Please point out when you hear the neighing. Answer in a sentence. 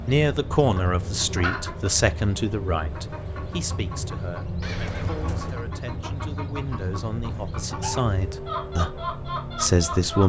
The neighing can be heard from 4.6 to 5.6 s.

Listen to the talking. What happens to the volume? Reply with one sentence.
The volume of the talking goes down, then up.